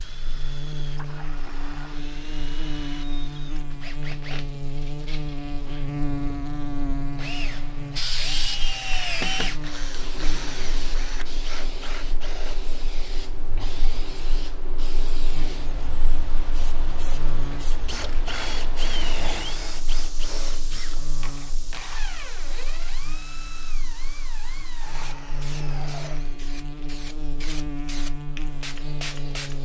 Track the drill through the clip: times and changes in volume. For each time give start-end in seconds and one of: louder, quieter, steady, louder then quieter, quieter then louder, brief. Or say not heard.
0.0-12.8 louder then quieter
17.8-26.4 quieter.